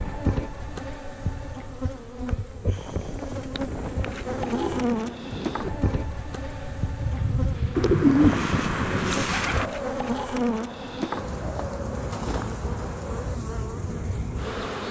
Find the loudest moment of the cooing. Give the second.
8 s.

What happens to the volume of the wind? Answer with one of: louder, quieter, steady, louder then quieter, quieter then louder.
louder then quieter.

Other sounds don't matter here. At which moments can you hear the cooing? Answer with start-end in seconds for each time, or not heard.
3.7-5.6, 7.8-9.7.